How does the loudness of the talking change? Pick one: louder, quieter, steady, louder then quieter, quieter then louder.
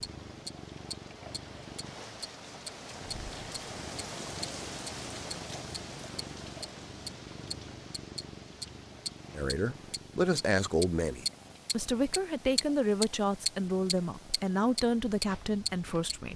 steady.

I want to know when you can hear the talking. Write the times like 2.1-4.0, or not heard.
9.3-16.3.